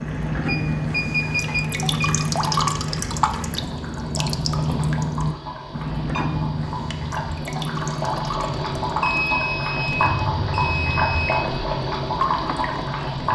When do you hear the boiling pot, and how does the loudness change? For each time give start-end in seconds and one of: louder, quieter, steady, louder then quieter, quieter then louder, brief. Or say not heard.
0.0-13.3 louder.